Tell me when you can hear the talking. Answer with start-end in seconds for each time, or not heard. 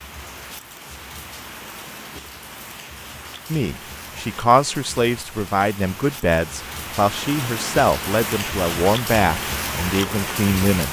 3.5-10.8.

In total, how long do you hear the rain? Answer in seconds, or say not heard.
11 s.